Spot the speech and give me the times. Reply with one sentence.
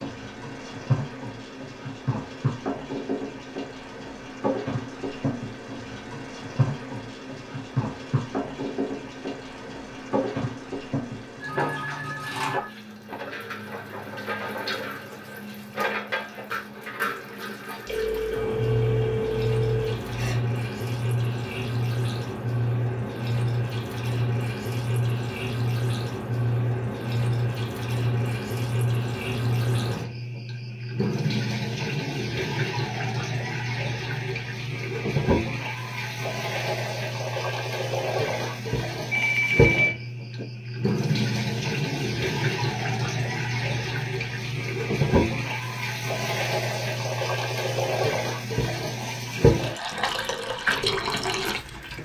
The speech can't be heard in this clip.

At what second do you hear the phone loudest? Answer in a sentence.
The loudest moment of the phone is at 40 seconds.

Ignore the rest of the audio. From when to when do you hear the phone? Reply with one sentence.
The phone can be heard from 11.4 to 13.3 s, from 17.9 to 20.4 s and from 39.1 to 40.5 s.